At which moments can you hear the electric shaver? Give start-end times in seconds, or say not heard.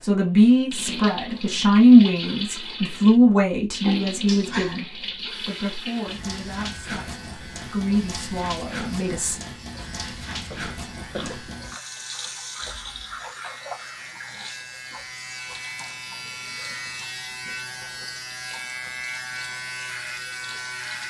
5.2-21.0.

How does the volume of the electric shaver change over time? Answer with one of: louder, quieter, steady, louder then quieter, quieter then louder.
louder.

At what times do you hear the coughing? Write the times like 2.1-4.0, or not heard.
3.9-4.8, 10.5-11.6, 16.9-18.2.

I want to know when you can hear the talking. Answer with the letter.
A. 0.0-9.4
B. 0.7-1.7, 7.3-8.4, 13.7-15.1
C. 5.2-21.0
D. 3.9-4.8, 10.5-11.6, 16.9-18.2
A.